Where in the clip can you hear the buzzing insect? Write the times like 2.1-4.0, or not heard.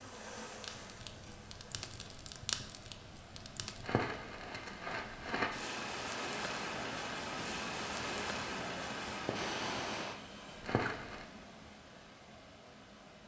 0.0-2.1.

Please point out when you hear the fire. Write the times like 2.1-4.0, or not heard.
0.1-11.2.